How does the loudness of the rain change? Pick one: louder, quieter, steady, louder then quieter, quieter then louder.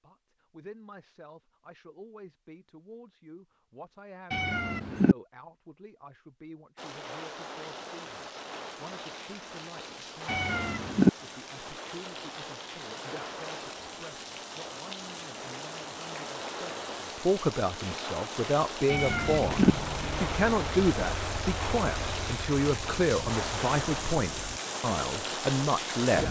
louder.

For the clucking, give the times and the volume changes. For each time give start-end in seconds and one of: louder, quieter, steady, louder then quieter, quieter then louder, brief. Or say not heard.
not heard.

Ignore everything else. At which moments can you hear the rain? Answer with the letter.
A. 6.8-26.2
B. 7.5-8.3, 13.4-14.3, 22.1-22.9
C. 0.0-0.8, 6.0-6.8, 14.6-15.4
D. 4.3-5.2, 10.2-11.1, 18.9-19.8
A.